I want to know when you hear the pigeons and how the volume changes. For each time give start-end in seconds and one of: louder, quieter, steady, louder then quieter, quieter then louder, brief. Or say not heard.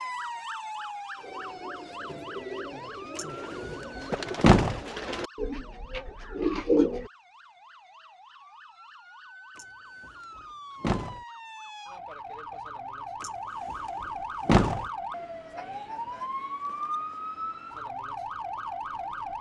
1.1-7.1 louder.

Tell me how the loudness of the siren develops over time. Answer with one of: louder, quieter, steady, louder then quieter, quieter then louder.
quieter then louder.